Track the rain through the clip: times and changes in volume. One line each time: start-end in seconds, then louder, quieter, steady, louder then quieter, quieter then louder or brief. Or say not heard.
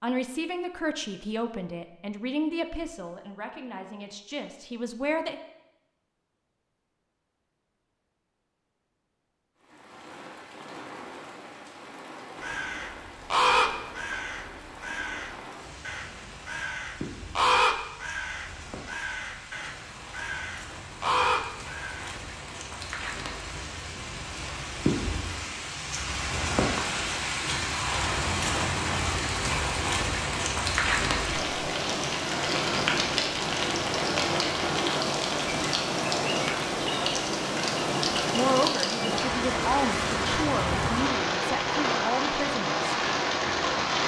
9.6-44.0 louder.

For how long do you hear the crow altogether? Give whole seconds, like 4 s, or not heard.
10 s.